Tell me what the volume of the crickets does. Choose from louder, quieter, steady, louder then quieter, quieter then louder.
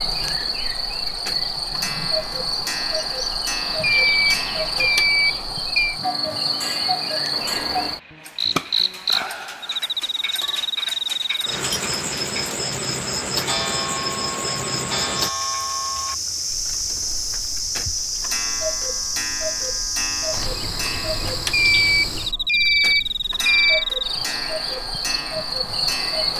steady.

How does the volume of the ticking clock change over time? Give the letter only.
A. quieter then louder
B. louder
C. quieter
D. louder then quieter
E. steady
E.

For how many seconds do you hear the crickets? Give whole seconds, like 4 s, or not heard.
26 s.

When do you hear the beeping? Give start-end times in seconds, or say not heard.
3.8-6.0, 21.5-23.9.